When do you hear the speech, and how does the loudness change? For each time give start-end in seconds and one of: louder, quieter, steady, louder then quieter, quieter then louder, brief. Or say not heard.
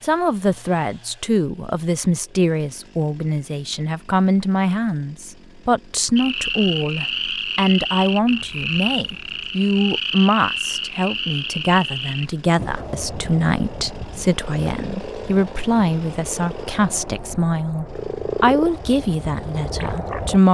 0.0-20.4 steady.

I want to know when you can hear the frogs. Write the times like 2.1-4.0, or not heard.
6.2-20.4.